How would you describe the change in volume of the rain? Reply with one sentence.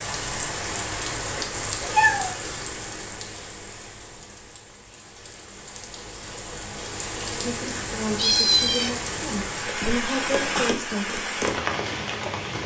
The loudness of the rain goes down, then up.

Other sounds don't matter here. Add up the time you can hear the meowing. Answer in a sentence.
You can hear the meowing for 2 seconds altogether.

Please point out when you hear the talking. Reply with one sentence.
You can hear the talking from 7.4 to 11.2 s.